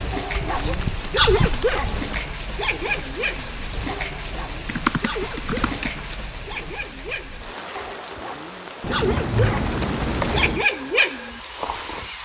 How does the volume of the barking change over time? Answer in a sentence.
The volume of the barking goes down, then up.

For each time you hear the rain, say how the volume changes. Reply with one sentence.
You can hear the rain from 0.0 to 12.2 s, at a steady volume.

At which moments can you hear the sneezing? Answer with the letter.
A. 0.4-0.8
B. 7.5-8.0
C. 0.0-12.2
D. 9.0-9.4
A.